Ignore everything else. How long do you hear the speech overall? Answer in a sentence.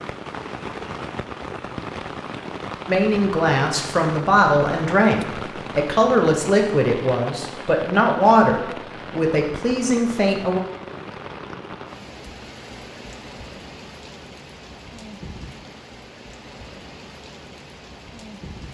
You can hear the speech for 8 seconds altogether.